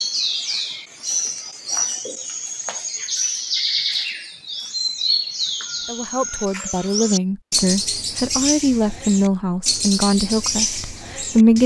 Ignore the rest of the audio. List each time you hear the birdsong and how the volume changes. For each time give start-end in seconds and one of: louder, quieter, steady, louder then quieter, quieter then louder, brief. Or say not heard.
0.0-11.6 steady.